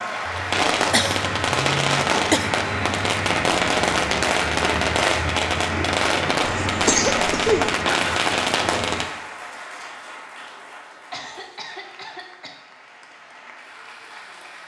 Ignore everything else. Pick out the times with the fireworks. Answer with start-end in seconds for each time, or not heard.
0.5-9.1.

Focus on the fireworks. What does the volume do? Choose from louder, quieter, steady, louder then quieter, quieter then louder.
steady.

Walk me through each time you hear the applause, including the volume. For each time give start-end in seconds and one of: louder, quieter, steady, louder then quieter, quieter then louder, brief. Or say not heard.
0.0-14.6 quieter.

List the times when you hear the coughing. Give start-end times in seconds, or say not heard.
0.2-2.5, 6.4-7.7, 11.1-12.6.